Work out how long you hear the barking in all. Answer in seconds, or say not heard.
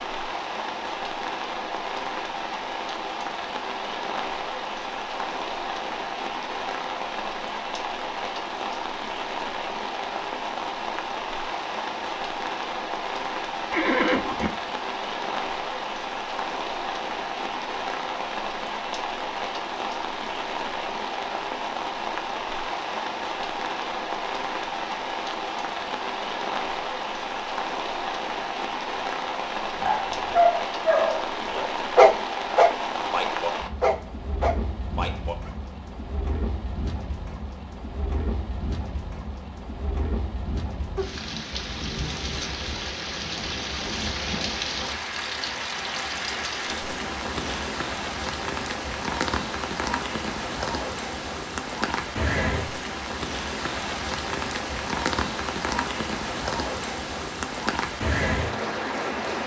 6 s.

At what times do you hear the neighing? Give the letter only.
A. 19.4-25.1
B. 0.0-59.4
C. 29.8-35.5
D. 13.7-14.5
D.